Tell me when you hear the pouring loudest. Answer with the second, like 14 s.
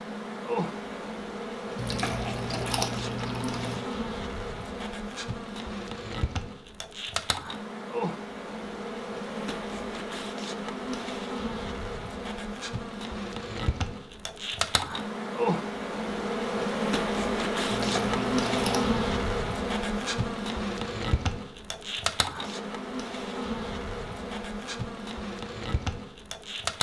3 s.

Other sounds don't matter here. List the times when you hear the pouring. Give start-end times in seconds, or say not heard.
1.8-3.8, 17.7-19.2.